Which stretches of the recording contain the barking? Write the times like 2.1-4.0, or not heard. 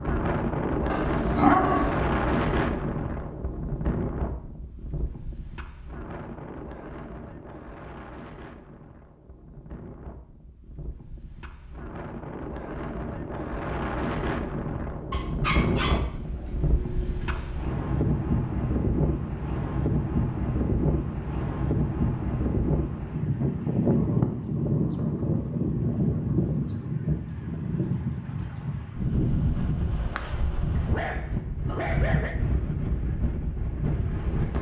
0.9-1.9, 15.1-17.6, 30.8-32.4.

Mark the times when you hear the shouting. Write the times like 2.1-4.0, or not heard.
not heard.